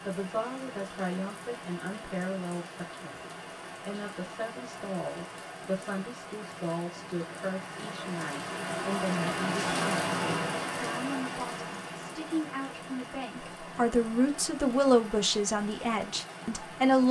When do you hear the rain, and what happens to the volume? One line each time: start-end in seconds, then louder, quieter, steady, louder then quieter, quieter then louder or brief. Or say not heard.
0.0-17.0 louder then quieter.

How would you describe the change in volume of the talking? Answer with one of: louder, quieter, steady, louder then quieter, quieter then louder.
louder.